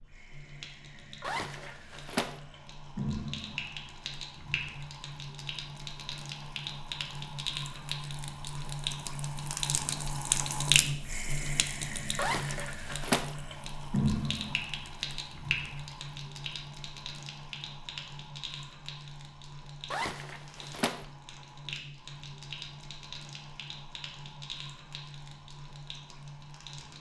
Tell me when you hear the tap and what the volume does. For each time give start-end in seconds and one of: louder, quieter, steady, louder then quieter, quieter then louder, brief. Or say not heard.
0.0-26.9 louder then quieter.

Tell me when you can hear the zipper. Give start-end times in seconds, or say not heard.
1.2-2.4, 12.2-13.3, 19.9-21.1.